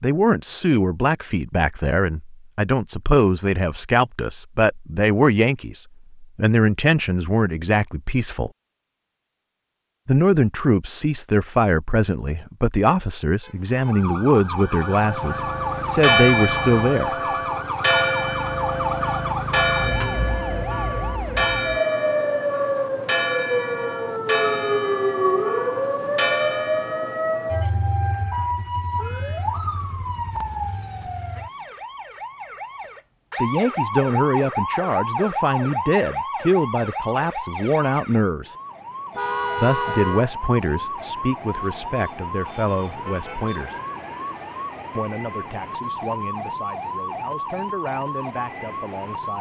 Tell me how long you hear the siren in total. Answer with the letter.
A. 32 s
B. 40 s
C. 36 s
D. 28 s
C.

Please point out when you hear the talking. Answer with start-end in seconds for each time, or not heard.
0.0-8.5, 10.1-17.1, 33.4-38.5, 39.5-43.8, 45.0-49.3.